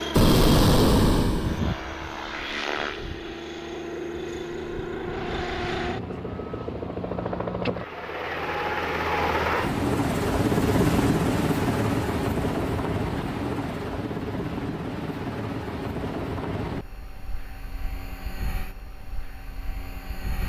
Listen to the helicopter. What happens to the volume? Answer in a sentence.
The loudness of the helicopter goes up, then down.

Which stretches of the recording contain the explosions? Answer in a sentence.
The explosions can be heard from 0.1 to 1.6 s.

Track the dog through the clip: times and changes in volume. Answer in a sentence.
You can't hear the dog here.